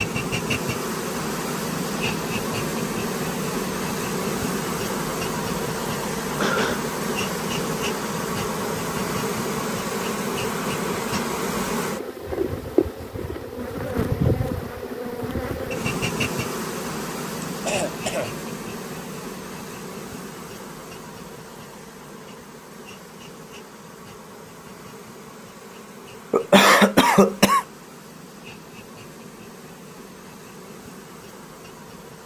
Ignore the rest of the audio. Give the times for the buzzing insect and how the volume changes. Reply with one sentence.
You can hear the buzzing insect from 0.0 to 32.2 s, getting quieter.